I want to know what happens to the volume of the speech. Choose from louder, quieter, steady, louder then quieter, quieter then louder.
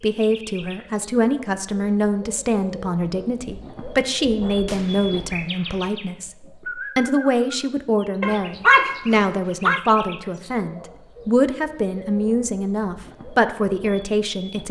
steady.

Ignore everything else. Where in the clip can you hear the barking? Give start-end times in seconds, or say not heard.
8.2-9.8.